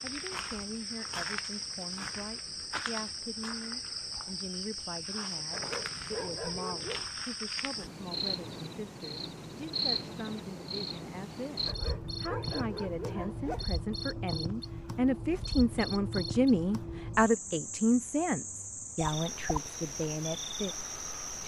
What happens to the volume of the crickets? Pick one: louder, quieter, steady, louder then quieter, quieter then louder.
steady.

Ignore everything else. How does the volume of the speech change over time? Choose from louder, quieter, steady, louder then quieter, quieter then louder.
louder.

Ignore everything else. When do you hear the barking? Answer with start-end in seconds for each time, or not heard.
5.5-7.0, 11.7-13.7.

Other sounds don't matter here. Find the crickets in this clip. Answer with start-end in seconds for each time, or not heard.
0.0-21.4.